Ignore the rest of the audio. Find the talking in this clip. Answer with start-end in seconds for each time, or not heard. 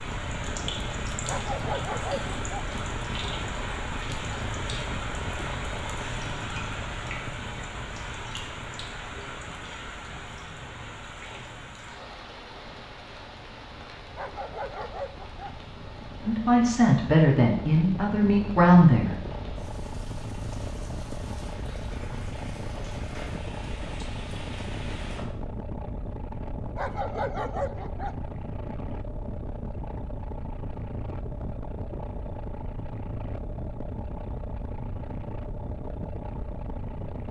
16.2-19.1.